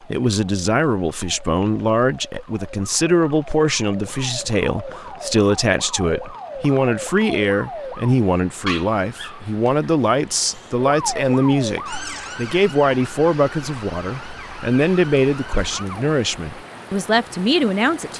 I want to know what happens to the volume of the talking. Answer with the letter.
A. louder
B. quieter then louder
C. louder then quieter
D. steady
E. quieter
D.